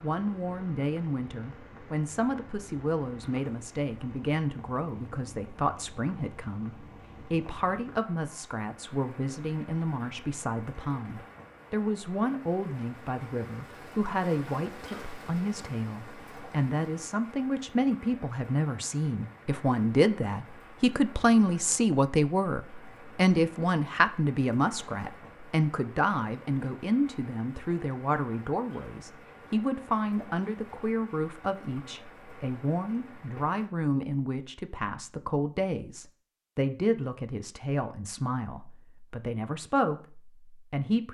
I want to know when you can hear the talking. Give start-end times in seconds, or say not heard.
0.0-41.0.